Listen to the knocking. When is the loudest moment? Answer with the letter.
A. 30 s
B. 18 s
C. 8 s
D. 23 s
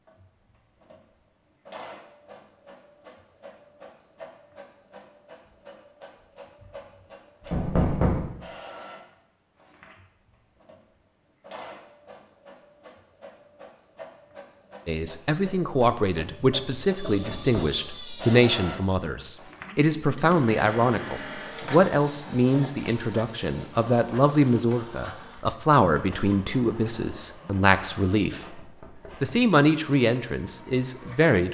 C.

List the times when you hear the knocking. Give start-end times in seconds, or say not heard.
7.5-8.2, 17.0-17.6, 28.6-29.4.